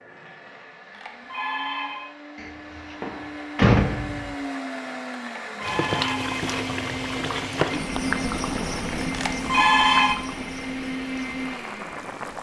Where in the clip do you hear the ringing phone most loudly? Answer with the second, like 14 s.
10 s.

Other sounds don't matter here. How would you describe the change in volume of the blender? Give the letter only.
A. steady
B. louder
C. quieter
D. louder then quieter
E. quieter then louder
B.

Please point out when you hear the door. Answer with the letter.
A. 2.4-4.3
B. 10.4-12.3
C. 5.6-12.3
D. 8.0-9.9
A.